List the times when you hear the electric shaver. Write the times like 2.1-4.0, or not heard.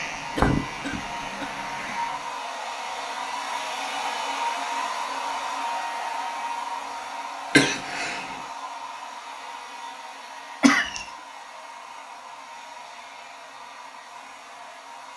0.0-2.4.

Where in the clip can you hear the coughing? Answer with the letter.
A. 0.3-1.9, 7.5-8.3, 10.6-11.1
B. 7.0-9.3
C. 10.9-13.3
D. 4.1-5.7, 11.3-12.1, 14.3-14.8
A.